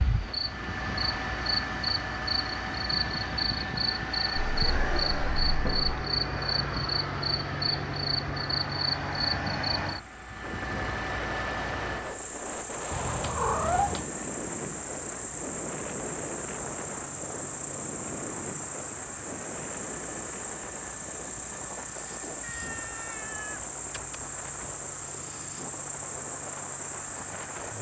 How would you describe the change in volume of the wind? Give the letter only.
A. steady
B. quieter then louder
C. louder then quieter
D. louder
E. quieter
E.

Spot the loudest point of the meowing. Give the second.
14 s.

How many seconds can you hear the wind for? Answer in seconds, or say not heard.
17 s.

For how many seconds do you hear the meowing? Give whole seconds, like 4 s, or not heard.
5 s.